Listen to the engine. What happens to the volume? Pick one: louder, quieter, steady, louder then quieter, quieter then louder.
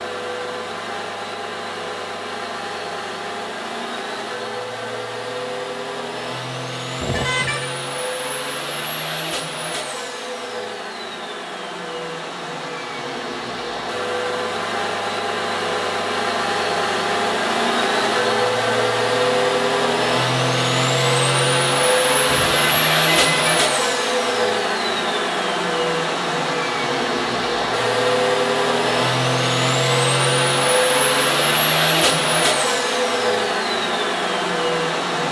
louder.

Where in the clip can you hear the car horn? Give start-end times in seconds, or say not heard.
7.0-7.7, 22.2-23.4.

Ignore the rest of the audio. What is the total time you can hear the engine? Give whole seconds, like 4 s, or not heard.
35 s.